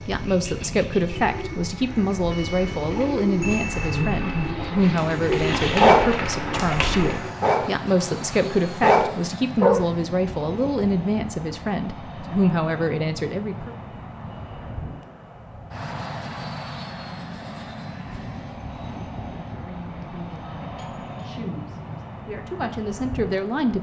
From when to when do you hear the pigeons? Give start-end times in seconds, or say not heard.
0.0-7.2.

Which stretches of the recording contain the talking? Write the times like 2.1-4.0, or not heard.
0.0-13.8, 19.4-23.7.